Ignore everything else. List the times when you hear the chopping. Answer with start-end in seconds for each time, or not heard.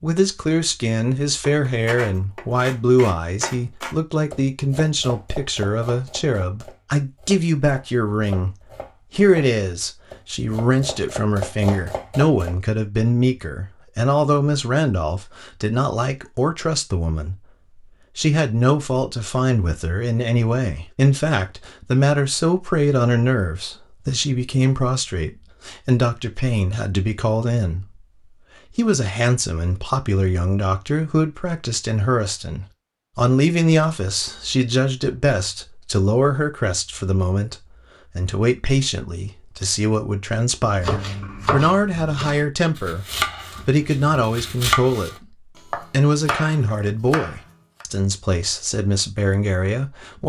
1.4-12.6, 40.7-47.9.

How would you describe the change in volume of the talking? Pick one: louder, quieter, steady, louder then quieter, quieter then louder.
steady.